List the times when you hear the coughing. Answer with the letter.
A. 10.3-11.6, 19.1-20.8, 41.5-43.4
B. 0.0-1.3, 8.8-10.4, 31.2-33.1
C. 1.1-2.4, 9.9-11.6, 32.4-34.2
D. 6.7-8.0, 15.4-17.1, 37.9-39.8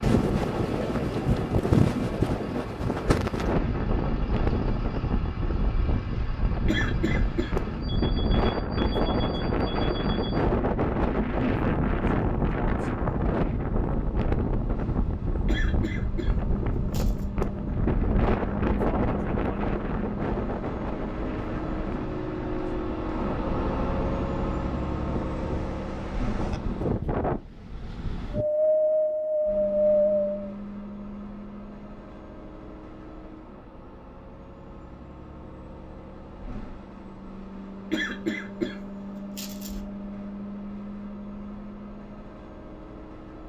D.